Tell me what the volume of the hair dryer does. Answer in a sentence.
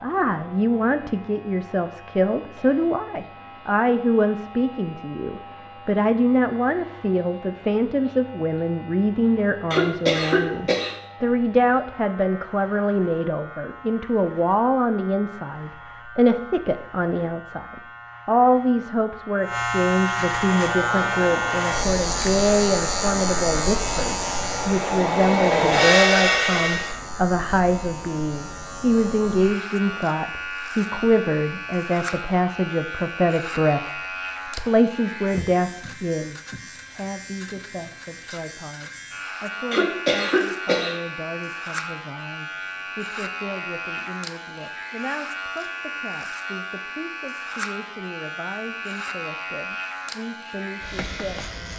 The loudness of the hair dryer goes up.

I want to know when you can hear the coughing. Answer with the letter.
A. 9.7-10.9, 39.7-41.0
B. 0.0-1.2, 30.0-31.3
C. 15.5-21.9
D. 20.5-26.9
A.